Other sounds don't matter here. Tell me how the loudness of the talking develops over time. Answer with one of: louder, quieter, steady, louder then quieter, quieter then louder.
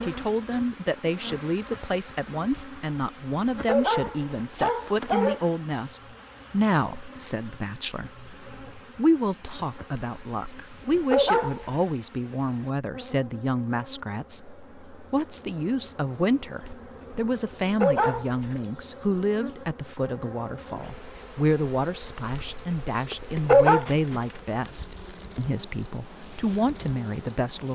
steady.